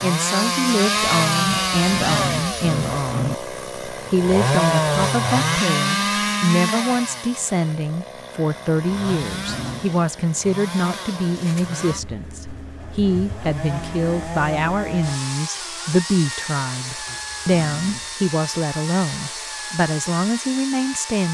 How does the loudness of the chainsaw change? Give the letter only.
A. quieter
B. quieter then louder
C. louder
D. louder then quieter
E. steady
A.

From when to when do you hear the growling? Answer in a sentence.
The growling can be heard from 1.4 to 3.4 s, from 9.3 to 9.9 s and from 17.1 to 18.1 s.